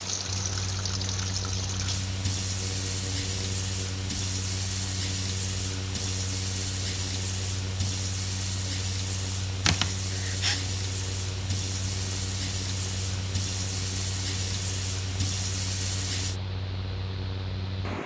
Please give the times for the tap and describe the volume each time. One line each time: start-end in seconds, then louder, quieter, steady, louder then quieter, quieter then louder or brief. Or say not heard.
0.0-16.4 steady.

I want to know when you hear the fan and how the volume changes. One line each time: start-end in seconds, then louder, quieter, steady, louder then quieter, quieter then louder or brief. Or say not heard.
0.0-18.0 steady.